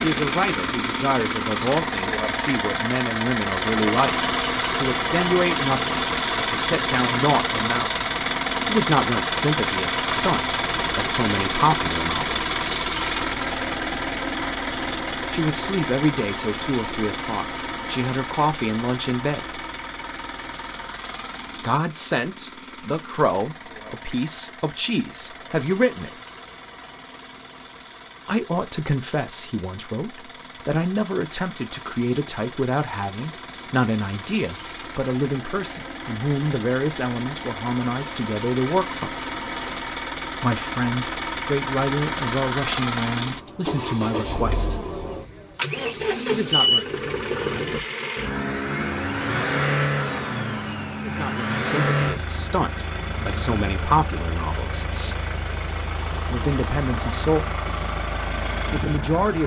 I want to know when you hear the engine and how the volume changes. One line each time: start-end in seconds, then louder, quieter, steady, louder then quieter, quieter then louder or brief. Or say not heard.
0.0-59.4 quieter then louder.